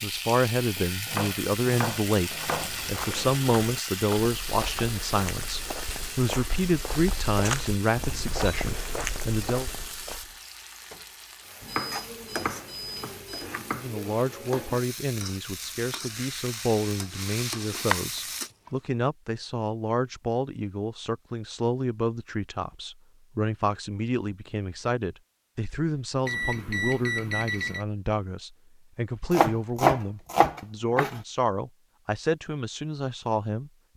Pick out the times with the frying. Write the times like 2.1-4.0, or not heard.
0.0-18.5.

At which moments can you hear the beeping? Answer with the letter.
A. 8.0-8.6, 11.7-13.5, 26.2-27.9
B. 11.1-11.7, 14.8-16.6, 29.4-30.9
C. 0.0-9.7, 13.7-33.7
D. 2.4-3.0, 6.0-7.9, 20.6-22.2
A.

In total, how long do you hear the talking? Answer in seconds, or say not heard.
30 s.